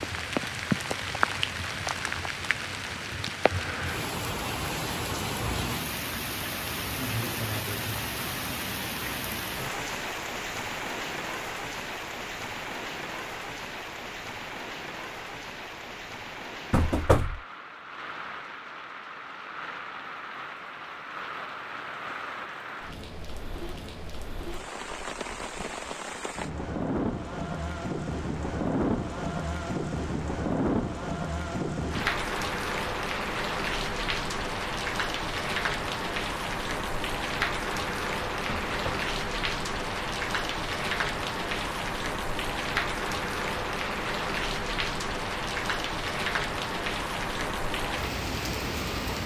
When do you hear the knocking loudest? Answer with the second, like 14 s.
17 s.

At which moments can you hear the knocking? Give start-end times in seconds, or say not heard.
16.7-17.4, 38.5-39.1.